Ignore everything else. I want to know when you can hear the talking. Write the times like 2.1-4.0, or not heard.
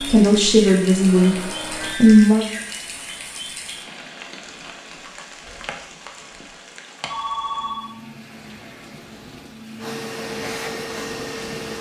0.0-2.5.